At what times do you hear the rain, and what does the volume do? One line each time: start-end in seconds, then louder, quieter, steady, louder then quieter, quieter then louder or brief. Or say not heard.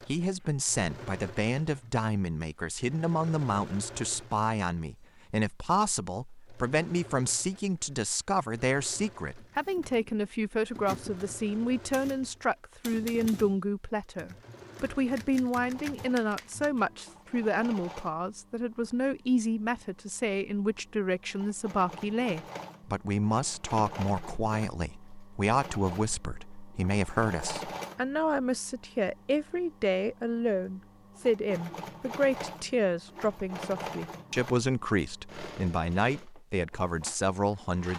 not heard.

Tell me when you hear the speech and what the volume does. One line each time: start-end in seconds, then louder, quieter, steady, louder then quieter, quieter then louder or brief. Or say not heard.
0.1-37.9 steady.